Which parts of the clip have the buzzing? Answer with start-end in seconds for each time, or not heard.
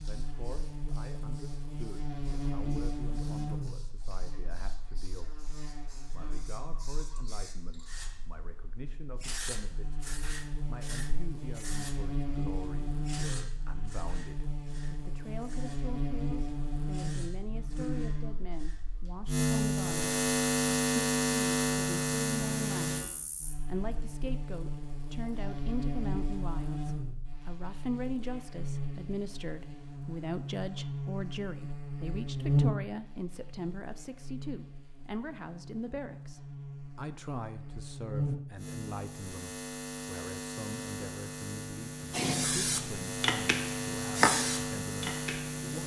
0.0-45.8.